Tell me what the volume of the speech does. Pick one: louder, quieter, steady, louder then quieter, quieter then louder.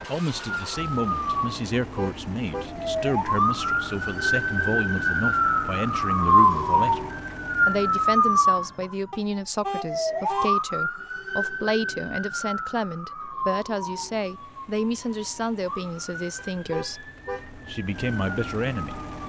steady.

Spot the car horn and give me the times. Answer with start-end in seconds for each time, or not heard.
1.8-2.8, 9.1-10.6, 16.4-17.5.